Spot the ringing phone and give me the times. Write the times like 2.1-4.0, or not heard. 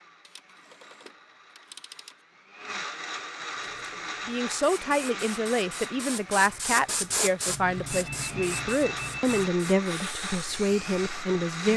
0.2-2.1, 7.5-9.5.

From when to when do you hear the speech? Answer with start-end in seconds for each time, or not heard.
4.2-11.7.